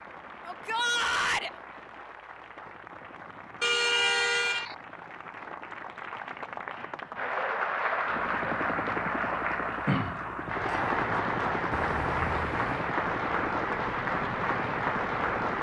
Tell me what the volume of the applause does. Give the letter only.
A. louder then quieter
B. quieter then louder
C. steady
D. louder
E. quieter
D.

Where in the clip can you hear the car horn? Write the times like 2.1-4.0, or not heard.
3.6-4.8, 11.7-12.9.